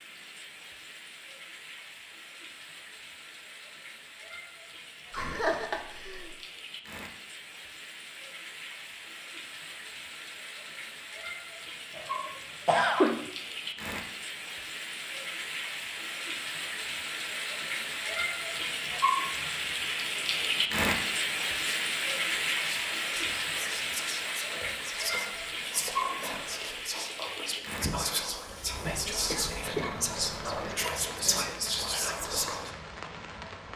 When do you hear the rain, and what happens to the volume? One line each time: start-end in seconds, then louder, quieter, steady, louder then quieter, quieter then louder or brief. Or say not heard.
0.0-33.7 louder then quieter.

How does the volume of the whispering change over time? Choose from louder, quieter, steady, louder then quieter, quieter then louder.
louder.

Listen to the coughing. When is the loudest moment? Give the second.
13 s.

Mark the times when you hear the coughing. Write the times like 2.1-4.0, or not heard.
5.1-6.3, 11.9-13.2, 28.8-30.8.